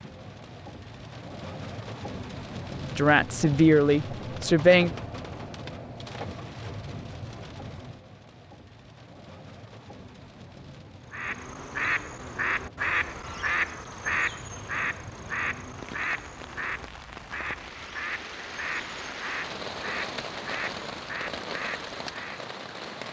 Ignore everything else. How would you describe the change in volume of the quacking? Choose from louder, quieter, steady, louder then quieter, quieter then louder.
quieter.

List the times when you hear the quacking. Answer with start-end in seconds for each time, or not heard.
11.1-22.4.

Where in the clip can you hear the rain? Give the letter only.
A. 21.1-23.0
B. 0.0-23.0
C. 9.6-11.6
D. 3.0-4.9
B.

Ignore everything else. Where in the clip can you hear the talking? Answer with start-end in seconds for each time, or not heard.
3.0-4.9.